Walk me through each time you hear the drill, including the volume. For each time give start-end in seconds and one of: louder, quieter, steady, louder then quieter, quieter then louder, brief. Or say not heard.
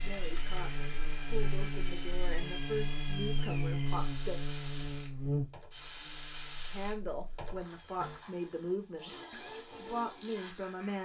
0.0-11.0 steady.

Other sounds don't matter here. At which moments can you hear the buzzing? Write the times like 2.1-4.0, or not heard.
0.0-8.2.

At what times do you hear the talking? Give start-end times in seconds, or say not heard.
0.0-4.4, 6.7-11.0.